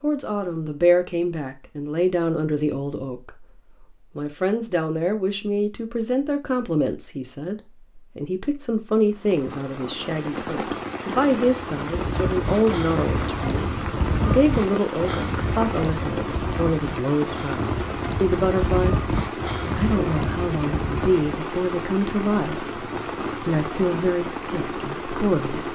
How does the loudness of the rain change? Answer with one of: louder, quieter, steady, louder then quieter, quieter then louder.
steady.